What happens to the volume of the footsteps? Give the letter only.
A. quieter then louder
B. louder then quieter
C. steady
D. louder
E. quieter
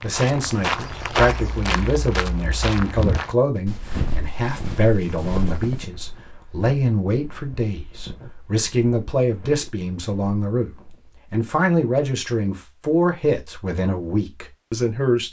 E.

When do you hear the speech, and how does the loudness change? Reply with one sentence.
The speech can be heard from 0.0 to 15.2 s, at a steady volume.